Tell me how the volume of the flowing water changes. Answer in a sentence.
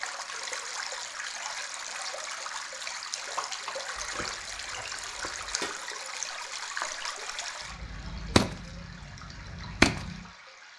The volume of the flowing water goes down.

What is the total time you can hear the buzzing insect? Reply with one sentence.
You can't hear the buzzing insect here.